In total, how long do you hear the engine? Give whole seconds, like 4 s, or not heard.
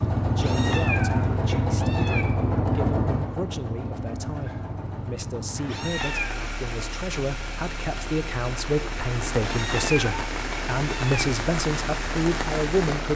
13 s.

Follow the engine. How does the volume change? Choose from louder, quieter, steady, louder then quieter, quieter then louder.
quieter.